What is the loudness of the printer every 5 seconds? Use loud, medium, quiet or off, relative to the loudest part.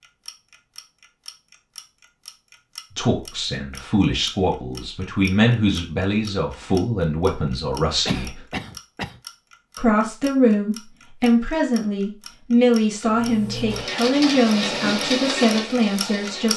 off, off, loud, loud.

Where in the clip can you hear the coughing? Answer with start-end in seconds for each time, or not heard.
8.1-9.2.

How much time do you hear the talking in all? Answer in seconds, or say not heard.
12 s.